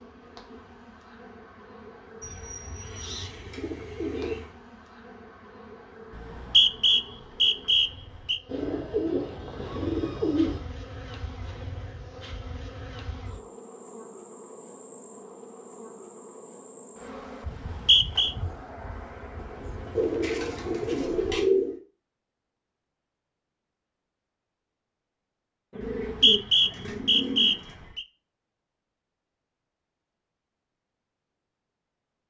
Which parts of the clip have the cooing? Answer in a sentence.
The cooing can be heard from 2.2 to 4.5 s, from 8.4 to 10.6 s, from 19.9 to 21.8 s and from 25.7 to 27.9 s.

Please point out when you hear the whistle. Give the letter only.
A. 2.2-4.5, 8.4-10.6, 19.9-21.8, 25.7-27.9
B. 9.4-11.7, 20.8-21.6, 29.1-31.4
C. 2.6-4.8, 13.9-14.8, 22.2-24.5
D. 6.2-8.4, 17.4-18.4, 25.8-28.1
D.